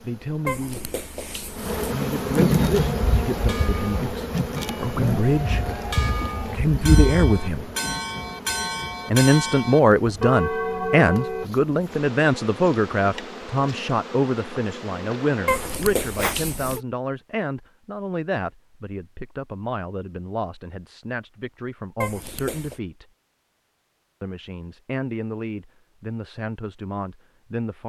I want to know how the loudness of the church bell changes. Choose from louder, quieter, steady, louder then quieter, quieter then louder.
louder.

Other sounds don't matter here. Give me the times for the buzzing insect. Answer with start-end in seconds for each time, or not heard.
0.0-16.4.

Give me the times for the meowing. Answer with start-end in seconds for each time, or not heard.
0.5-1.9, 15.4-16.8, 22.0-22.8.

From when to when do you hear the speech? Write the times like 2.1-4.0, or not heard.
0.0-0.9, 1.9-5.7, 6.4-7.7, 9.1-23.1, 24.2-27.8.